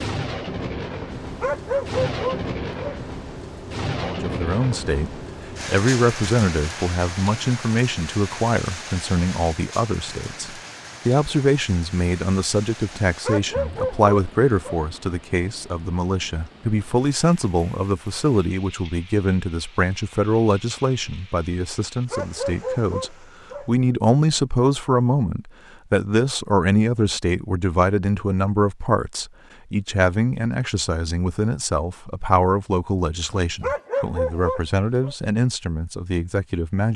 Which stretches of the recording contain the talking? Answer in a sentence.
You can hear the talking from 4.0 to 36.9 s.